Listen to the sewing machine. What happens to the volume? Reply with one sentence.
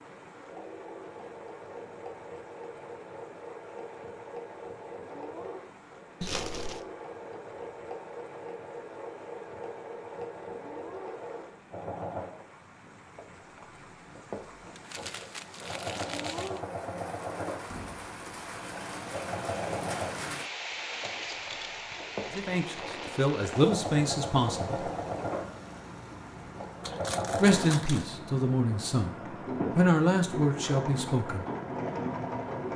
The loudness of the sewing machine goes up.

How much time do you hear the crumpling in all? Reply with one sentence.
The crumpling can be heard for 4 seconds in total.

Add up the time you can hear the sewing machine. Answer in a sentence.
You can hear the sewing machine for 33 seconds altogether.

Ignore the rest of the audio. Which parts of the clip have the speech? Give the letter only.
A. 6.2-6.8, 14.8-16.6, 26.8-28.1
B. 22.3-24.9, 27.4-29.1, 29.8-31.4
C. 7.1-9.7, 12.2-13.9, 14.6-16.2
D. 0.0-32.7
B.